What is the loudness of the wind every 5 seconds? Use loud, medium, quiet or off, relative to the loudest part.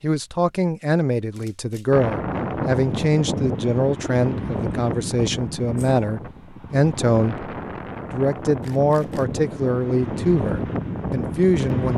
loud, medium, loud.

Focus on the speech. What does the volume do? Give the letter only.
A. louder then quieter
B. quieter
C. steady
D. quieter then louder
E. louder
C.